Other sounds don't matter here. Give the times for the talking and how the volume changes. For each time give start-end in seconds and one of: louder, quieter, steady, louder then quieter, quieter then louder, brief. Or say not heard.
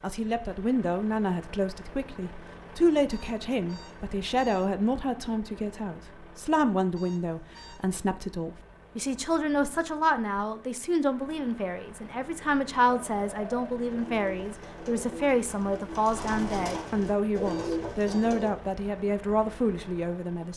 0.0-20.5 steady.